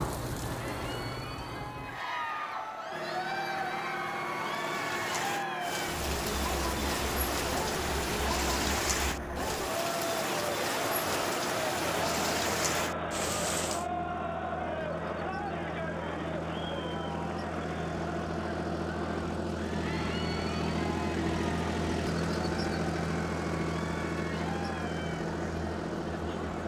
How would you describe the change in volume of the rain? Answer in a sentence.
The loudness of the rain goes up.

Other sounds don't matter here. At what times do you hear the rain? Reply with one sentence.
The rain can be heard from 0.0 to 13.8 s.